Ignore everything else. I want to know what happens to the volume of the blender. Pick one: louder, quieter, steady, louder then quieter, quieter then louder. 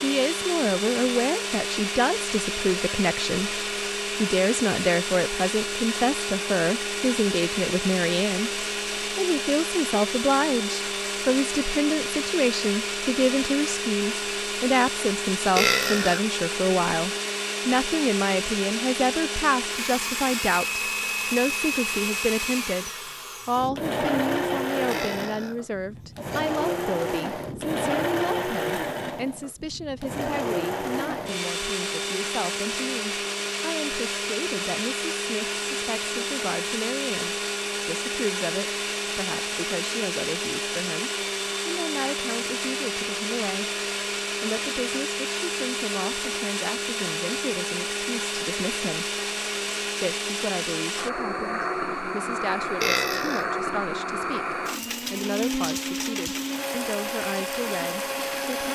steady.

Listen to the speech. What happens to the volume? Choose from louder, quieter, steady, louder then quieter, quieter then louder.
quieter.